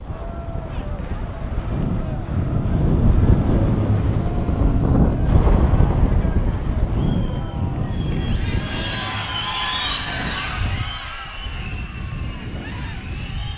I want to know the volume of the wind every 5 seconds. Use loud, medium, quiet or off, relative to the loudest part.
loud, loud, medium.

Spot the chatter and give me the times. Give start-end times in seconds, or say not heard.
0.0-13.5.